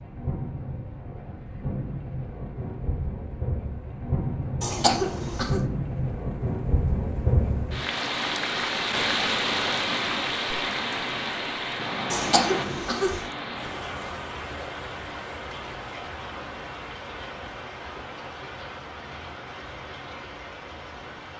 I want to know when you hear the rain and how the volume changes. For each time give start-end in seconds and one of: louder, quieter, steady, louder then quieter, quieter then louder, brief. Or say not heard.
0.0-21.3 louder then quieter.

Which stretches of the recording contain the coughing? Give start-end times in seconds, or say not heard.
4.6-5.6, 12.1-13.2.